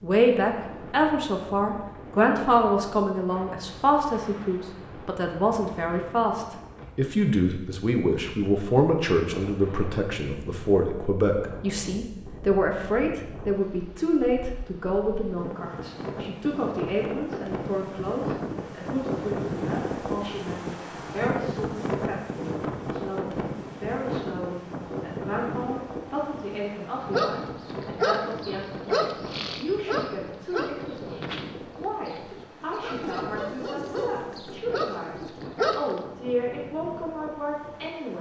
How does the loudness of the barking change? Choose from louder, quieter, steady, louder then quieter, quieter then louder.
quieter then louder.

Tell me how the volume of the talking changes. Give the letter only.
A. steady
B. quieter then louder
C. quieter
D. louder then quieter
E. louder
C.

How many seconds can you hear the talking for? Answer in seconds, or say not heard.
38 s.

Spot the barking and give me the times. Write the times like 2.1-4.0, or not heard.
27.1-36.0.